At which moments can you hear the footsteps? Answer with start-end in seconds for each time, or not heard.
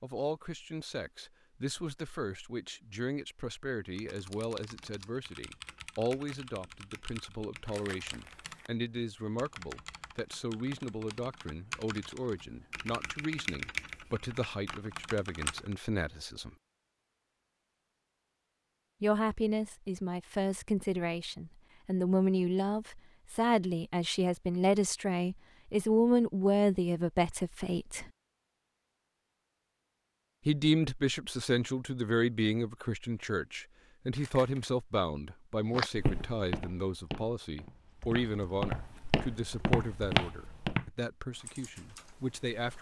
35.7-40.9.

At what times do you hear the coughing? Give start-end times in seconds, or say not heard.
not heard.